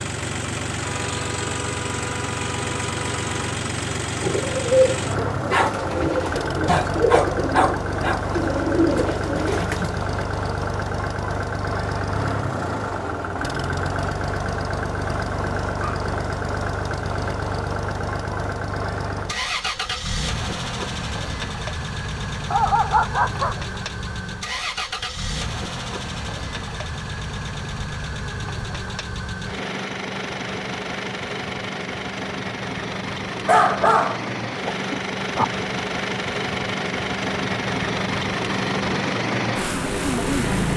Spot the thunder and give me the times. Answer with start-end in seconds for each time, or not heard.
not heard.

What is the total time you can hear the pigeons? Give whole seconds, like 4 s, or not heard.
6 s.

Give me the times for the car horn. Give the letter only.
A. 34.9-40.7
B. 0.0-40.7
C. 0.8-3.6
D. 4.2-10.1
C.